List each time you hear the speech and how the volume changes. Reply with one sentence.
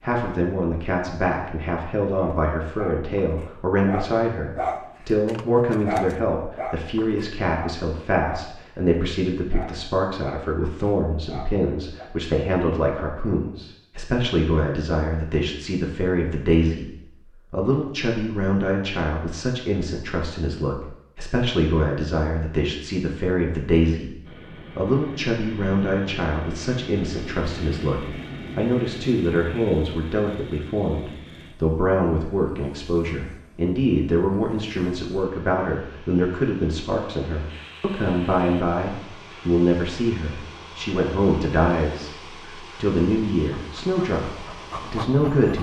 You can hear the speech from 0.0 to 45.5 s, at a steady volume.